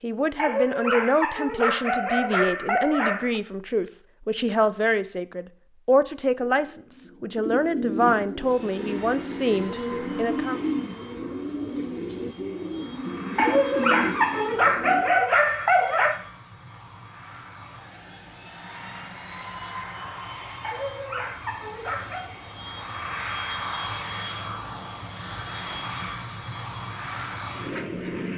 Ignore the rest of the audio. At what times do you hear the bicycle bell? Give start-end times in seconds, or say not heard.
not heard.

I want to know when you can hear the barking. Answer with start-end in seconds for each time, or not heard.
0.3-3.4, 13.3-16.2, 20.6-22.4.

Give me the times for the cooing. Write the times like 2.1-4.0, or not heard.
6.3-15.2.